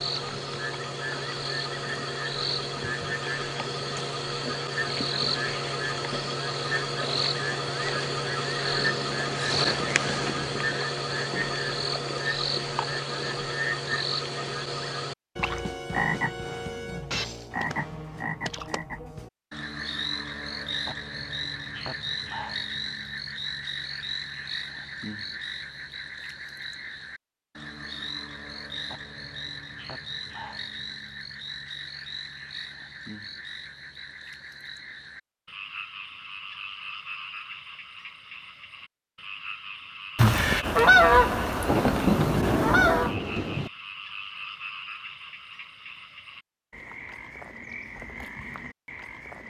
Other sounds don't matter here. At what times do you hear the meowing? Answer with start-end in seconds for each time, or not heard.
not heard.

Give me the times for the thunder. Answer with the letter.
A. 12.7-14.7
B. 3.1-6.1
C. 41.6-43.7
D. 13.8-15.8
C.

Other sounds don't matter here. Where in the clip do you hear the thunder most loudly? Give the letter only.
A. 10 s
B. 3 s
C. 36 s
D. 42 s
D.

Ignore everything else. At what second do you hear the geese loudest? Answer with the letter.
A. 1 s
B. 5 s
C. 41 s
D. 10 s
C.